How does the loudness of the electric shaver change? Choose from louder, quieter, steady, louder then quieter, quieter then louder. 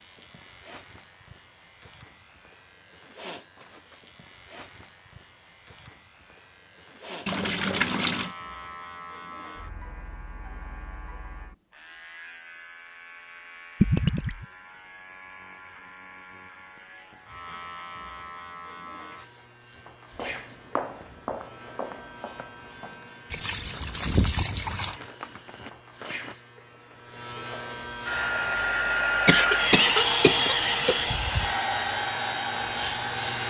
louder.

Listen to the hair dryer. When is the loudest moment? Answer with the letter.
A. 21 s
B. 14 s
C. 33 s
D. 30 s
D.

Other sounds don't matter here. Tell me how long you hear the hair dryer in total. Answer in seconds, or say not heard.
5 s.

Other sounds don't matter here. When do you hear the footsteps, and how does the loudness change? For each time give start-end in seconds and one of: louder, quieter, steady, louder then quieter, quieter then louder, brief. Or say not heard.
20.1-26.4 quieter then louder.